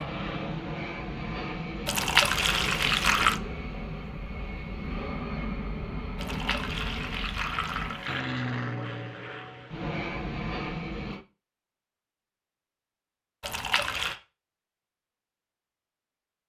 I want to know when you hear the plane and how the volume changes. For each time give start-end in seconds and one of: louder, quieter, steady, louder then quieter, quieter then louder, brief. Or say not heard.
0.0-11.2 steady.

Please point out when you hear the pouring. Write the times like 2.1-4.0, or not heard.
1.9-3.4, 6.2-8.2, 13.4-14.2.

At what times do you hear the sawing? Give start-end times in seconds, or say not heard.
not heard.